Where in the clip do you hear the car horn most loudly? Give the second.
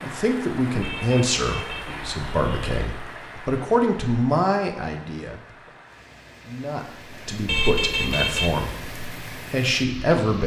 8 s.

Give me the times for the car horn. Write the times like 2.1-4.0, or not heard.
0.8-2.8, 7.5-8.8.